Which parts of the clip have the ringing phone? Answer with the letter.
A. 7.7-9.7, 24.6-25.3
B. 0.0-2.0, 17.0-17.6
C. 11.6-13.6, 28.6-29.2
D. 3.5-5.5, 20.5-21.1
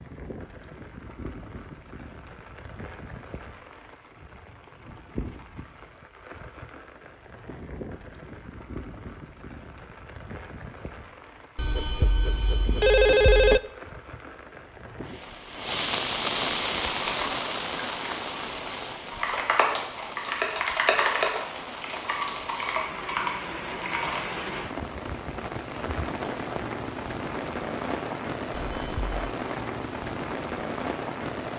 C.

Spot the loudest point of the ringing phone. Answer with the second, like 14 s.
13 s.